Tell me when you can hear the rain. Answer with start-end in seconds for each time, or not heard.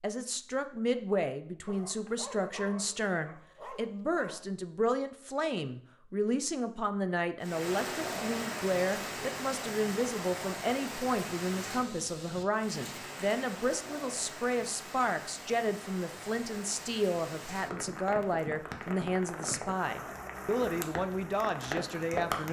7.4-22.4.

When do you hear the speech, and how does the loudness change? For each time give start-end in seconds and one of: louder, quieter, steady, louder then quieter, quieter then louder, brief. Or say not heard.
0.0-22.4 steady.